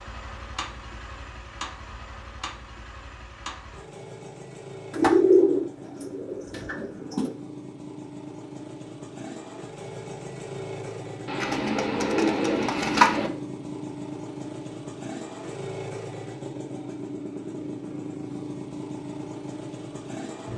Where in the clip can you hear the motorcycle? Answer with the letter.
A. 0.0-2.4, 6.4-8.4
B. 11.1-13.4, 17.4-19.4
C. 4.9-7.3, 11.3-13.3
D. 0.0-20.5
D.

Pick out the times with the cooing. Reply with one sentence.
You can hear the cooing from 4.9 to 7.3 s and from 11.3 to 13.3 s.